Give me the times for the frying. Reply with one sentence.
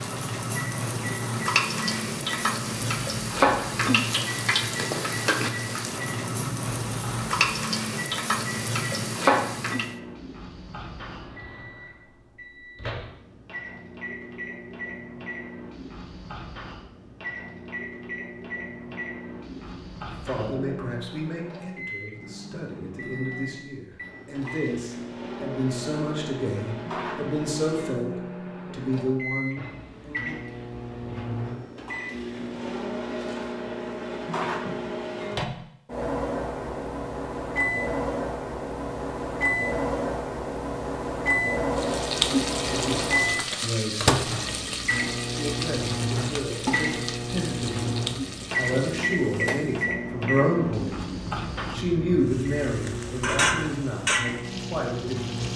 You can hear the frying from 0.0 to 9.9 s, from 41.8 to 49.9 s and from 52.3 to 55.5 s.